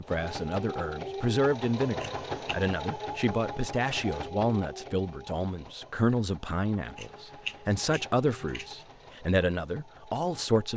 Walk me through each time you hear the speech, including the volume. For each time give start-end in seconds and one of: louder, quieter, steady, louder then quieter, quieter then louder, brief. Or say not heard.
0.0-10.7 steady.